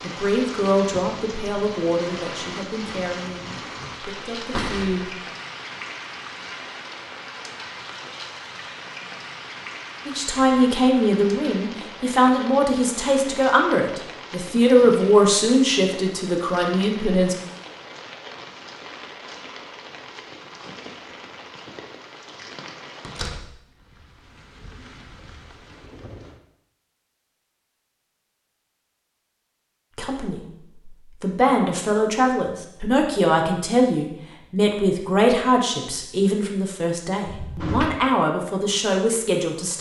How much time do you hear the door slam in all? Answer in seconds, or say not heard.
2 s.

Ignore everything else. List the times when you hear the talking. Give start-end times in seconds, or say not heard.
0.0-5.0, 10.1-17.4, 29.9-39.7.